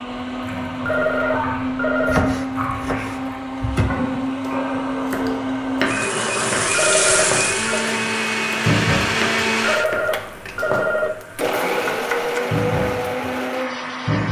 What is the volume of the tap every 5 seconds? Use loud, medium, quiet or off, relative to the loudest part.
medium, loud, loud.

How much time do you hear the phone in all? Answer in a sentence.
You can hear the phone for 4 seconds altogether.